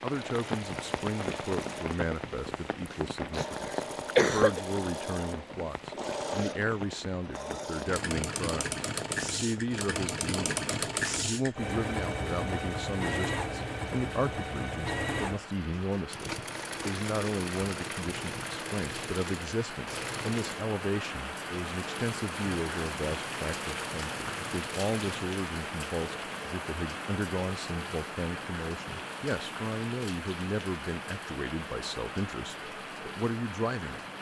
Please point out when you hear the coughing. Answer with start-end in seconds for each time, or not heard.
2.9-4.6.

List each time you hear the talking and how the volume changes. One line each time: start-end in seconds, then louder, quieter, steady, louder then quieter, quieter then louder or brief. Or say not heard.
0.0-34.0 steady.